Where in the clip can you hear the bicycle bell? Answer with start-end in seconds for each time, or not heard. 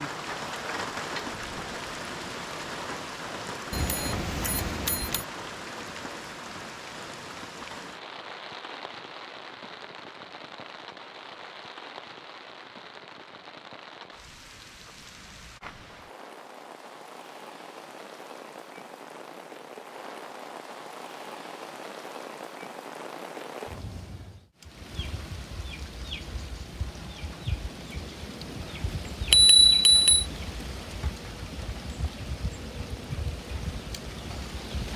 3.7-5.2, 29.3-30.2.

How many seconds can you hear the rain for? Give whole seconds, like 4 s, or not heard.
35 s.